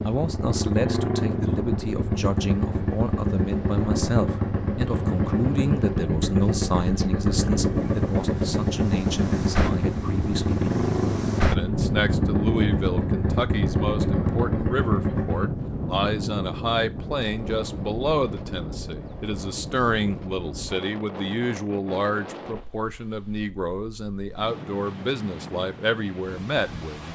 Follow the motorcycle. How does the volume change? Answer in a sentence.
The volume of the motorcycle stays about the same.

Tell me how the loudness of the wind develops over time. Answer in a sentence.
The loudness of the wind goes up, then down.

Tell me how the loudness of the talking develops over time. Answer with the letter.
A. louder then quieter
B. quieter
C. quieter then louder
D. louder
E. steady
E.